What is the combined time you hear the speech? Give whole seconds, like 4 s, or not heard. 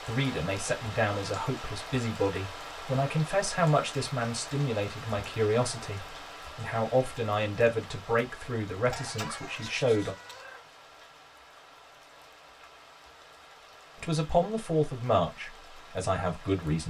13 s.